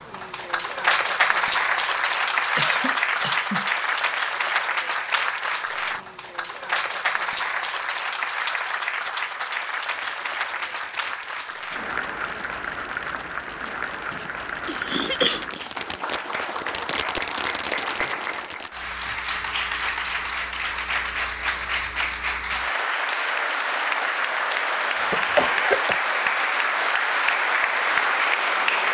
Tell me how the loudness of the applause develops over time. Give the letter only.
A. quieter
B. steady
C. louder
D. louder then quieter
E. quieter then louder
E.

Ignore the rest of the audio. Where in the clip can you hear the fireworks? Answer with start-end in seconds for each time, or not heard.
9.9-18.7.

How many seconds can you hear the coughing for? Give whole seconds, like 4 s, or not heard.
4 s.